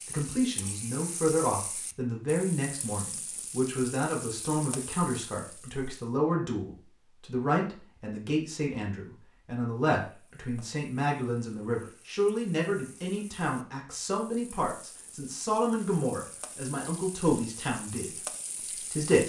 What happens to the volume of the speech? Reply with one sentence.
The volume of the speech stays about the same.